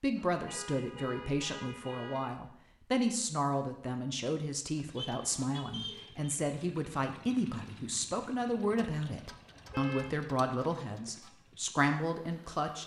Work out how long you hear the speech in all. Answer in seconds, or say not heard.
13 s.